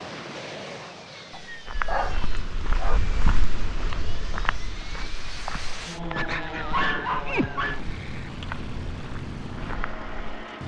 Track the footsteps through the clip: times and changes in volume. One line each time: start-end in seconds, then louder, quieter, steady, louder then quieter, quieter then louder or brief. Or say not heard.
1.6-10.4 quieter.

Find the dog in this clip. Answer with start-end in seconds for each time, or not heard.
1.3-3.0, 6.1-7.8.